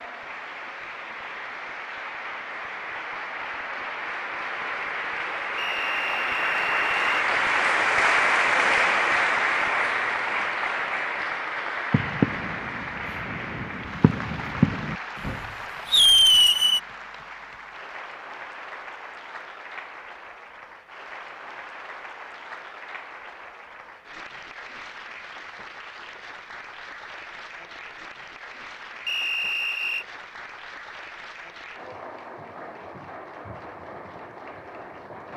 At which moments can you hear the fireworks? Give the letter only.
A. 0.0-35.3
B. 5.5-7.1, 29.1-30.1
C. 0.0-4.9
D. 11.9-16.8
D.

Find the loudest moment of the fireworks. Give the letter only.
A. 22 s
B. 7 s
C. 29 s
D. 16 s
D.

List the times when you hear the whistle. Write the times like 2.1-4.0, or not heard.
5.5-7.1, 29.1-30.1.